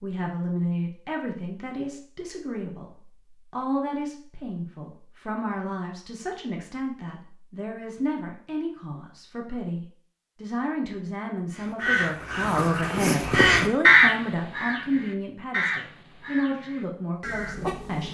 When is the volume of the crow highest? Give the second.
14 s.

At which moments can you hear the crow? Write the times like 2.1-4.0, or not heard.
11.6-18.1.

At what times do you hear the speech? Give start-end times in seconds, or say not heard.
0.0-18.1.